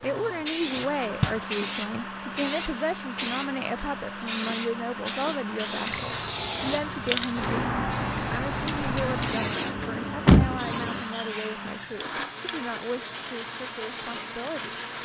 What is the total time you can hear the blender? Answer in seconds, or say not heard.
15 s.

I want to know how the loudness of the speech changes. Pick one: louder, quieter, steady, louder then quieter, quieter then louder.
quieter.